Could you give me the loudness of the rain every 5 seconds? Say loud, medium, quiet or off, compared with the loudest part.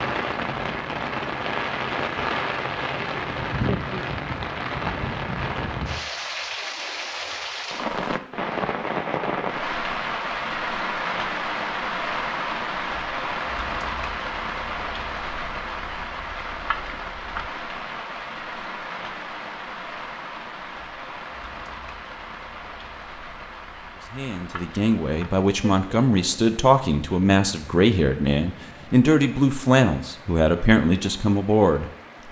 loud, loud, loud, medium, medium, quiet, quiet.